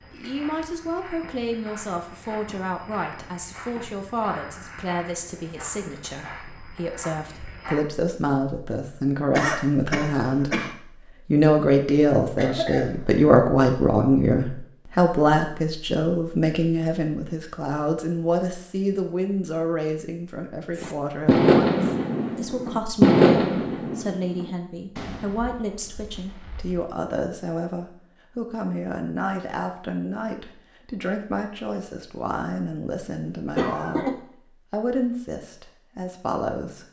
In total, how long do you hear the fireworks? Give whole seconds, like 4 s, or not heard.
6 s.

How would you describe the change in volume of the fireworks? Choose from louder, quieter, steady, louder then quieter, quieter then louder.
quieter.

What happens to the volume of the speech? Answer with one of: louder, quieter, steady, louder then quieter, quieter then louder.
louder then quieter.